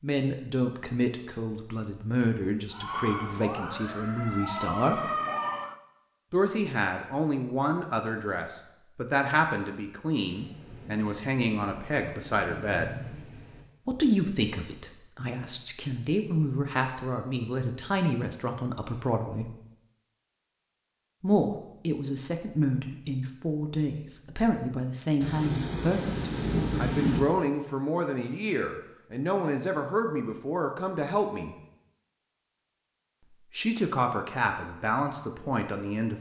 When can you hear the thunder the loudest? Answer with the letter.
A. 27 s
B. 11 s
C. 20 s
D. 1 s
A.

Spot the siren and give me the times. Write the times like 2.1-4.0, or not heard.
2.7-5.8.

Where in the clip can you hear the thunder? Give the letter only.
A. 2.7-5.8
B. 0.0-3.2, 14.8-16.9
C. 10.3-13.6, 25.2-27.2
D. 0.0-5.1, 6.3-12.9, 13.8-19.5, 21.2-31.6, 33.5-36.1
C.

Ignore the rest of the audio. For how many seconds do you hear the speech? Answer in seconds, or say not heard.
30 s.